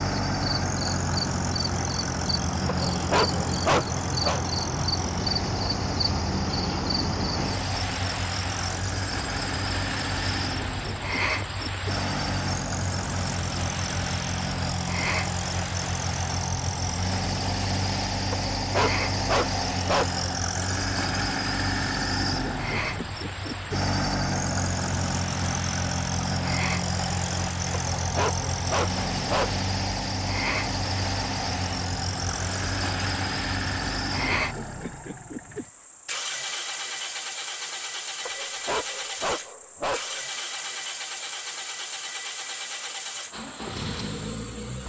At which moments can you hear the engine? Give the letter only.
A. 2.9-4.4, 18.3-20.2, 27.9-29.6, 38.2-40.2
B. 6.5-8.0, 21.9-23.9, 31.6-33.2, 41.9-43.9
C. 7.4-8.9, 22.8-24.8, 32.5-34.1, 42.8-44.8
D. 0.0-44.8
D.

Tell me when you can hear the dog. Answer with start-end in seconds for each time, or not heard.
2.9-4.4, 18.3-20.2, 27.9-29.6, 38.2-40.2.